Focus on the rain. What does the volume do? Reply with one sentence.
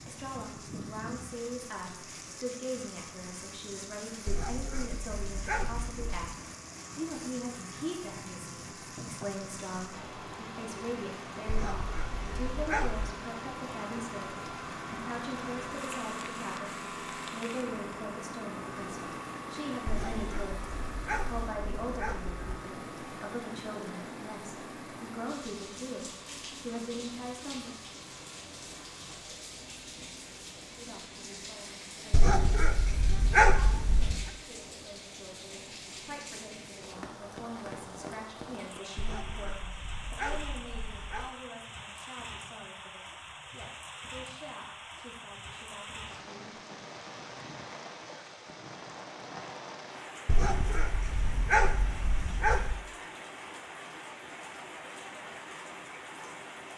The loudness of the rain stays about the same.